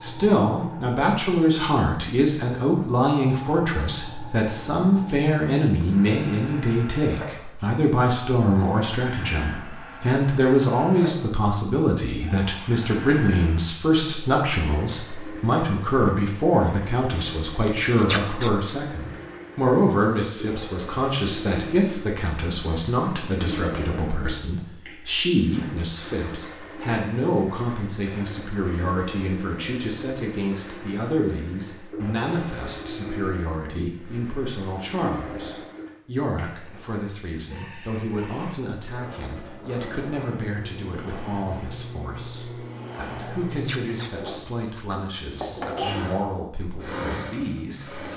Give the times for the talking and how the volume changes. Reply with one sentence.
The talking can be heard from 0.0 to 48.1 s, getting quieter.